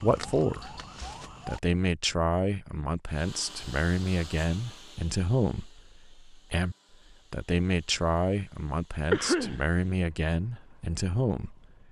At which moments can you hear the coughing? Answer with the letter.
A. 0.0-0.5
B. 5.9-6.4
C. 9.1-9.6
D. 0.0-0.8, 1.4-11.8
C.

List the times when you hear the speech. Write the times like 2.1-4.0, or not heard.
0.0-0.8, 1.4-11.8.